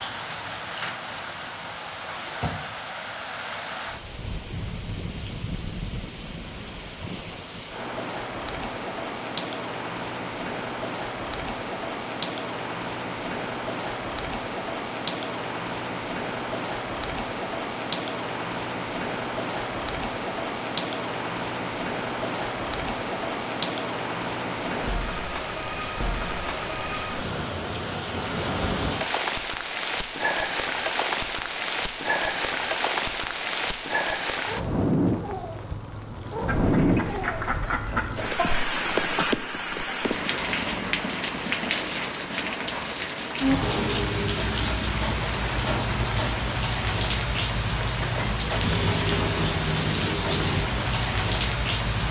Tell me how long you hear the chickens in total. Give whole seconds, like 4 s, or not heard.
2 s.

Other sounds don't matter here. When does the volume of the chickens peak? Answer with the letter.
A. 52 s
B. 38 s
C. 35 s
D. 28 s
B.